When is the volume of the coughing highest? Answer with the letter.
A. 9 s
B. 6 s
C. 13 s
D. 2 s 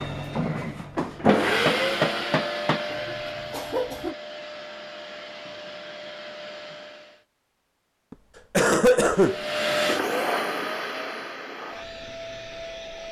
A.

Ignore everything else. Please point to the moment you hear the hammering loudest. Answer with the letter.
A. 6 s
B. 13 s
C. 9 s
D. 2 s
D.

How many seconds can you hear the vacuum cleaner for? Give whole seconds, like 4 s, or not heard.
11 s.